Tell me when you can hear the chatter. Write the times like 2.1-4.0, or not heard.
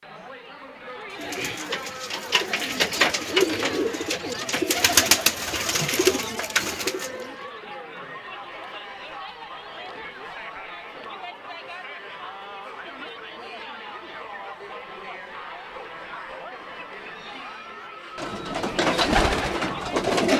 0.0-20.1.